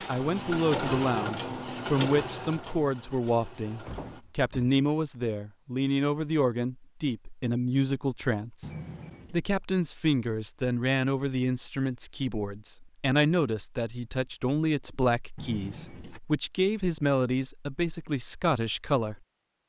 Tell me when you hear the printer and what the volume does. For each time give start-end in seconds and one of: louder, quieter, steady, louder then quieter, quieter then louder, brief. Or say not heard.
0.0-4.2 quieter.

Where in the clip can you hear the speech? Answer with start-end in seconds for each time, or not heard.
0.1-8.7, 9.3-19.1.